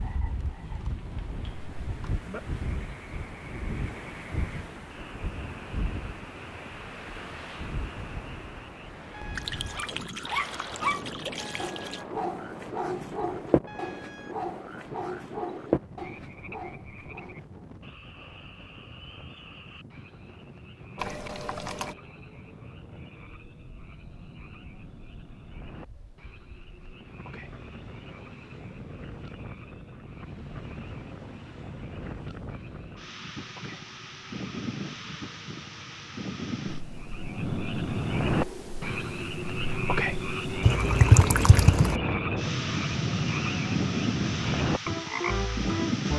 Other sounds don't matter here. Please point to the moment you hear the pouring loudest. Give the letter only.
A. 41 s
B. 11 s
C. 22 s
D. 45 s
A.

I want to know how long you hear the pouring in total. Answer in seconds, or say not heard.
5 s.